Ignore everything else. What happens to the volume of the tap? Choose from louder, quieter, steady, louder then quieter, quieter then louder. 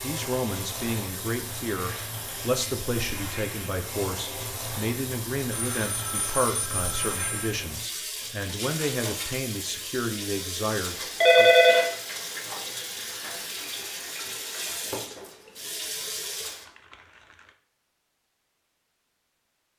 steady.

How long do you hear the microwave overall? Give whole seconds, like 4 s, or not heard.
not heard.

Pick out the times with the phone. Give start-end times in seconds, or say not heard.
5.5-7.5, 11.2-11.9.